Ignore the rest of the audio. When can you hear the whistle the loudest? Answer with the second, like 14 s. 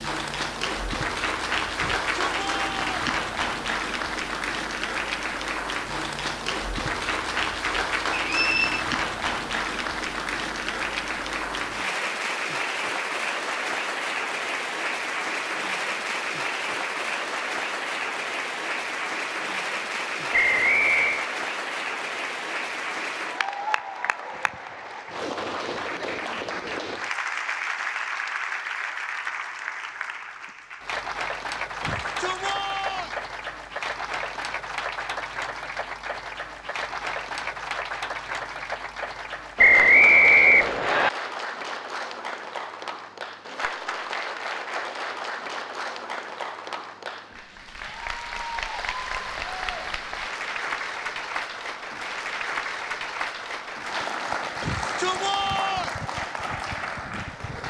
40 s.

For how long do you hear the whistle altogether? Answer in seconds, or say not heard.
3 s.